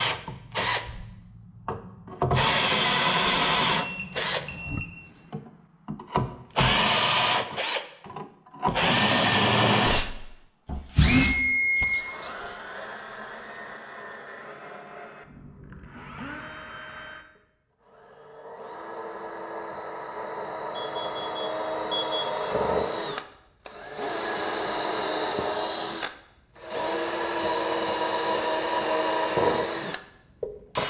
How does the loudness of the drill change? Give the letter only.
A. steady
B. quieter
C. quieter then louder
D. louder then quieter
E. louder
C.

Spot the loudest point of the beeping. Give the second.
12 s.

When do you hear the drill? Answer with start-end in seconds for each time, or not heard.
0.0-30.8.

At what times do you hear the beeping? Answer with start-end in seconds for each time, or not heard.
3.8-4.8, 11.1-12.1, 20.8-22.2.